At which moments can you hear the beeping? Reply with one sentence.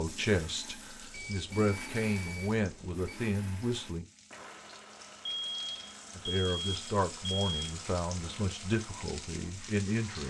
The beeping can be heard from 1.1 to 3.1 s and from 5.2 to 7.7 s.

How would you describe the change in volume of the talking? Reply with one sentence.
The volume of the talking stays about the same.